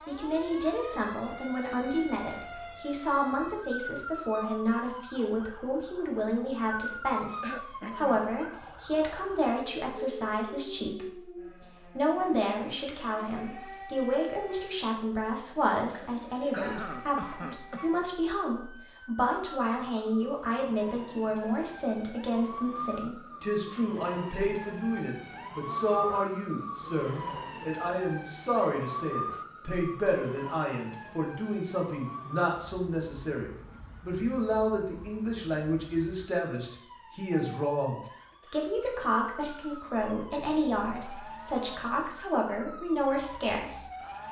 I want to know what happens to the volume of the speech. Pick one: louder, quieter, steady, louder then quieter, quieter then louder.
steady.